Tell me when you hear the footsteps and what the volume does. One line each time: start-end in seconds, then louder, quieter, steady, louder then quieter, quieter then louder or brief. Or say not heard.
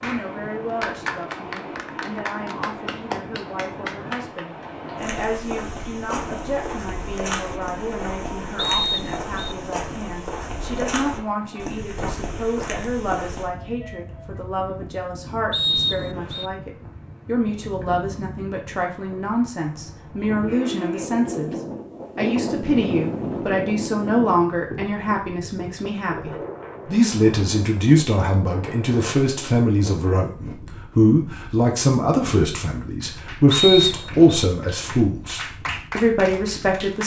5.0-13.5 steady.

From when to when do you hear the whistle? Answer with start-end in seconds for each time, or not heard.
8.6-9.6, 15.5-16.5, 33.5-34.5.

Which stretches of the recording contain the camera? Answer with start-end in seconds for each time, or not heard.
not heard.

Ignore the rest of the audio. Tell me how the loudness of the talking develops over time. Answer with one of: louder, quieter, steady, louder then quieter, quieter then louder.
louder.